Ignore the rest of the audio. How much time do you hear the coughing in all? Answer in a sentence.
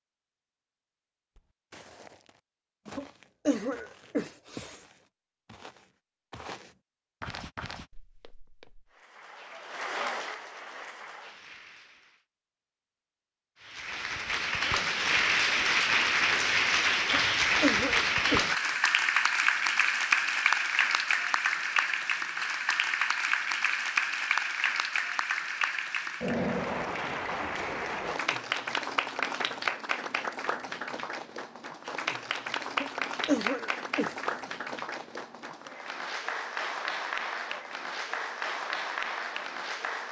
You can hear the coughing for 5 seconds altogether.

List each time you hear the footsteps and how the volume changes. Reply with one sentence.
You can hear the footsteps from 1.4 to 8.9 s, getting quieter then louder.